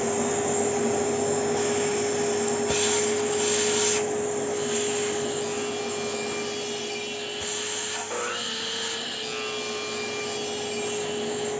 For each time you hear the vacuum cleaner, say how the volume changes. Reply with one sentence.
The vacuum cleaner can be heard from 0.0 to 11.5 s, getting quieter.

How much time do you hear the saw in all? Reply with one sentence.
You can hear the saw for 7 seconds altogether.